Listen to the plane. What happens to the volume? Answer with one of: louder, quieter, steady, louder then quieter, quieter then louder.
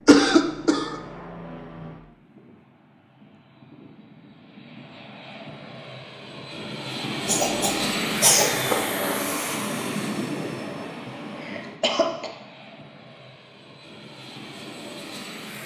louder then quieter.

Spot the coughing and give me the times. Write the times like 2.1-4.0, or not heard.
0.1-0.9, 7.2-8.8, 11.1-12.3.